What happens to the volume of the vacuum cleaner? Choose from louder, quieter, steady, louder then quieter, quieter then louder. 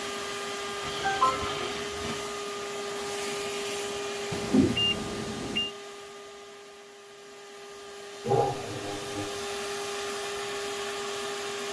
quieter then louder.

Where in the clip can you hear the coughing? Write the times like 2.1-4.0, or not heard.
1.0-1.6, 8.2-9.4.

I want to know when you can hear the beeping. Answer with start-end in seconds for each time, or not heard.
4.3-5.7.